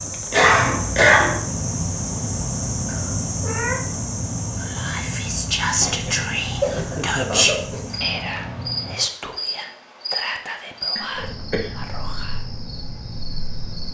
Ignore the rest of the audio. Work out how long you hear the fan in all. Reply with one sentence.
The fan can be heard for 9 seconds in total.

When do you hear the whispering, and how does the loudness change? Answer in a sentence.
You can hear the whispering from 4.5 to 12.4 s, getting quieter.